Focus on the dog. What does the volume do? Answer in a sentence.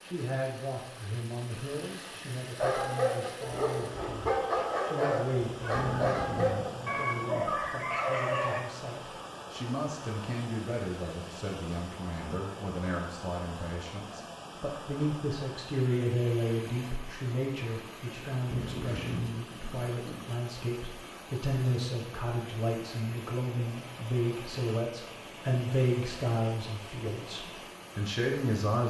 The loudness of the dog stays about the same.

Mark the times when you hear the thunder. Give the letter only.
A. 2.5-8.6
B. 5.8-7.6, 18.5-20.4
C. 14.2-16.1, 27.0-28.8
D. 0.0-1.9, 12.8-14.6
B.